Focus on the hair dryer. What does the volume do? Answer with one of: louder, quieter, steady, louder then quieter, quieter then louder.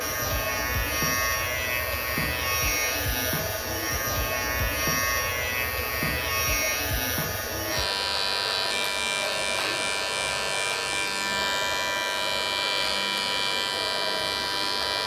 steady.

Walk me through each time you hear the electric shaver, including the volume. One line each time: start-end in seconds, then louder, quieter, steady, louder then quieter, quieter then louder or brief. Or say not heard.
0.0-15.0 steady.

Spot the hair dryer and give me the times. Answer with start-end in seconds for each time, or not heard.
0.0-15.0.